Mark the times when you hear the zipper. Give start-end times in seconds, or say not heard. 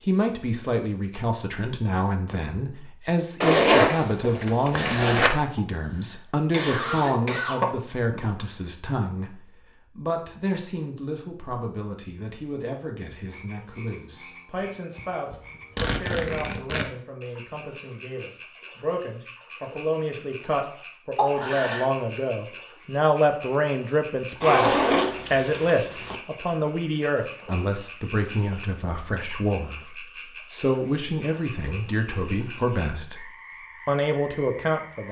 3.4-5.3, 14.9-16.9, 24.4-26.1.